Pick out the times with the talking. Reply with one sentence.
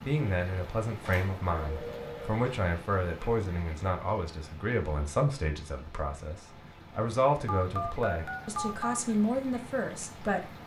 You can hear the talking from 0.0 to 10.4 s.